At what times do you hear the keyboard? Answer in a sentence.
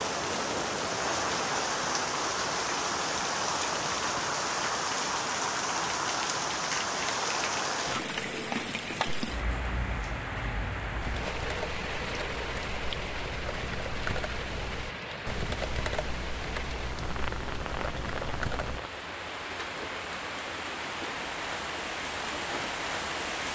You can hear the keyboard from 11.0 to 18.8 s.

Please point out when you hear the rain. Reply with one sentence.
The rain can be heard from 0.0 to 23.4 s.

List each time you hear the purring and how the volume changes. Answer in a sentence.
You can't hear the purring here.